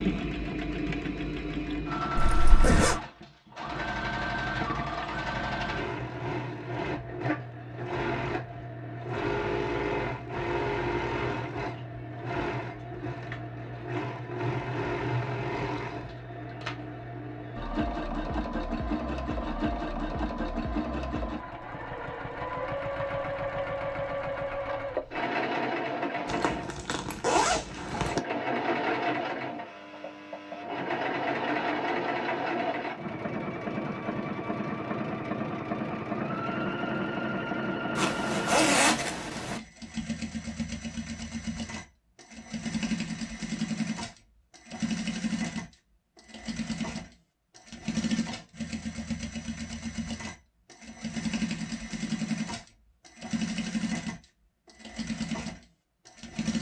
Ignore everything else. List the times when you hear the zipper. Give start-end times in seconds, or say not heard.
2.1-3.0, 26.2-28.2, 38.0-39.6.